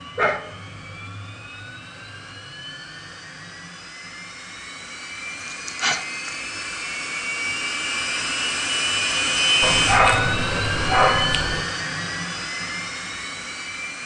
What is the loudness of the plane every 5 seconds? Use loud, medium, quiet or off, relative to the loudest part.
quiet, loud, loud.